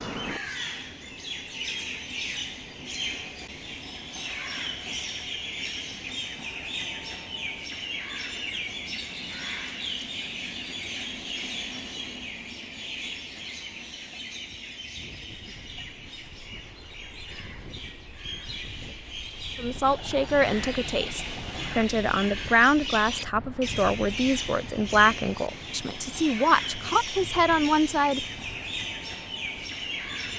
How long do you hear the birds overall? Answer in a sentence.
You can hear the birds for 30 seconds altogether.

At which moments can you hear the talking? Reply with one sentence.
You can hear the talking from 19.6 to 28.2 s.